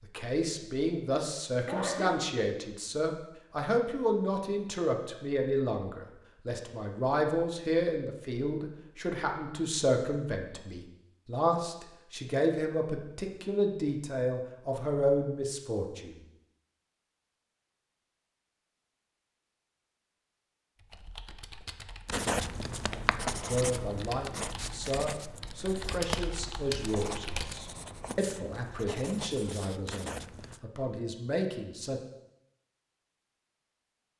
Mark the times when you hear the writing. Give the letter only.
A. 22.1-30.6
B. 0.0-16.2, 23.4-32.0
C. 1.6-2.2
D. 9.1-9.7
A.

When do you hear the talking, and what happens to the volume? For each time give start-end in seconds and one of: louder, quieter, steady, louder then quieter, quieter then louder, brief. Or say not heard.
0.0-16.2 steady
23.4-32.0 steady.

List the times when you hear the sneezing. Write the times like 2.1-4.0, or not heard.
1.6-2.2.